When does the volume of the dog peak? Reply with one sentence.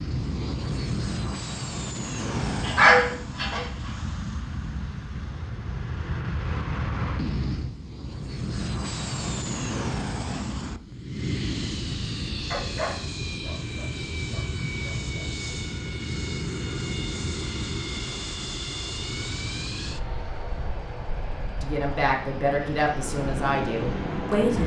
The volume of the dog peaks at 3 seconds.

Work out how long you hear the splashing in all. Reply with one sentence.
The splashing can't be heard in this clip.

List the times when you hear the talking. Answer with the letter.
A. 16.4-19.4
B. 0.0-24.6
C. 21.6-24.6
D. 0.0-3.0
C.